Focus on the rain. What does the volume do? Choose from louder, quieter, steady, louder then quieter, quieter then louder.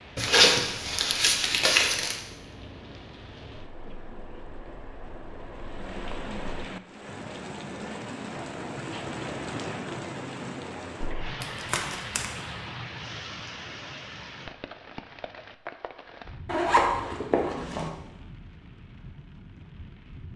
louder then quieter.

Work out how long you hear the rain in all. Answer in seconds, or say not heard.
20 s.